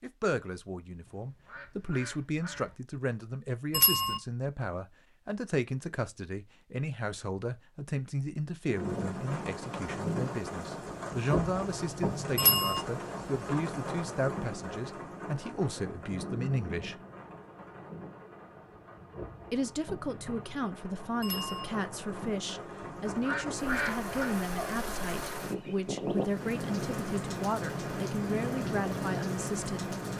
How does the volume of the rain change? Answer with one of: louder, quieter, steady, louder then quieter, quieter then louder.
quieter then louder.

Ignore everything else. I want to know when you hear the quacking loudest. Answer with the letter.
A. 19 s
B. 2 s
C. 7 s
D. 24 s
D.